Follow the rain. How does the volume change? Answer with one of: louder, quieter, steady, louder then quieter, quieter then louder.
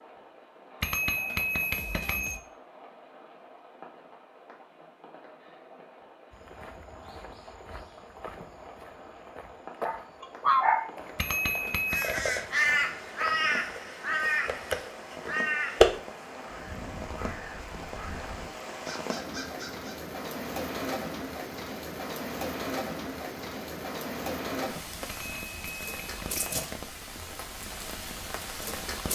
louder.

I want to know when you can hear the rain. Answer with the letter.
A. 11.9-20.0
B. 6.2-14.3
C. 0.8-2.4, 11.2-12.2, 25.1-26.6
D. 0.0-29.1
D.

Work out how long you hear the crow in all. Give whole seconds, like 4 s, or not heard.
8 s.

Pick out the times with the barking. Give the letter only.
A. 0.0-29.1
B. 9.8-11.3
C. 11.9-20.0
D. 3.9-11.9
B.